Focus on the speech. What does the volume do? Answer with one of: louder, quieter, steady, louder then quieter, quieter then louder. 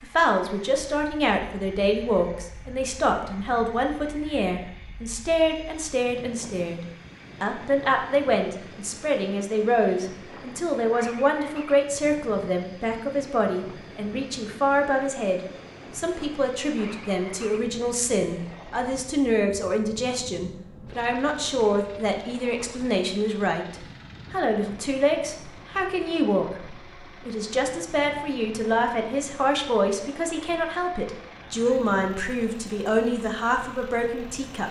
steady.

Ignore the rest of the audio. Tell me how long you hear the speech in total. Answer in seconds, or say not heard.
34 s.